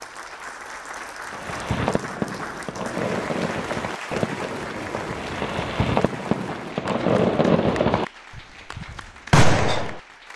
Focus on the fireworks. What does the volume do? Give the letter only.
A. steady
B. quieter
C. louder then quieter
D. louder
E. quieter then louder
D.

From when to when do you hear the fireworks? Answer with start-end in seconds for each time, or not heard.
1.3-10.0.